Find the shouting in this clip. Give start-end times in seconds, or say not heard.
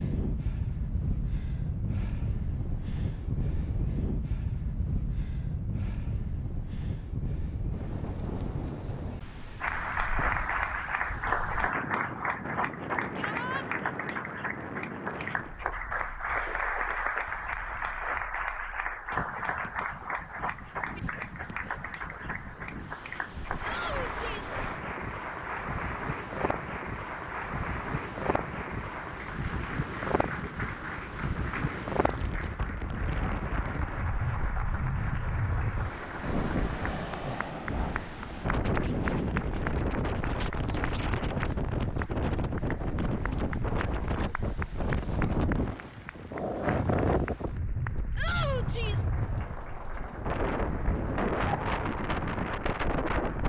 13.2-13.7, 23.6-24.6, 48.1-49.1.